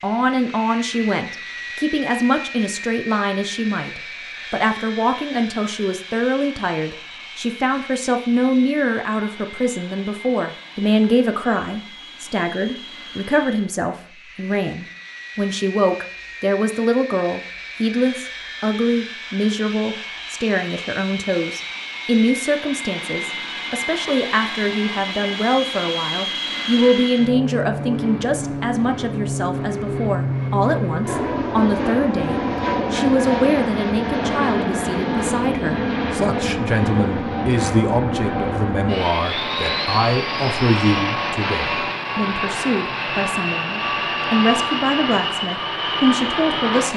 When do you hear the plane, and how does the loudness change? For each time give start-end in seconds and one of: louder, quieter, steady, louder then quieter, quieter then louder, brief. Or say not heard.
0.0-46.9 louder.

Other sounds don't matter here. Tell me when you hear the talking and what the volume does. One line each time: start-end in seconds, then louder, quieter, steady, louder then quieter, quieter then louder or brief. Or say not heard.
0.0-46.9 steady.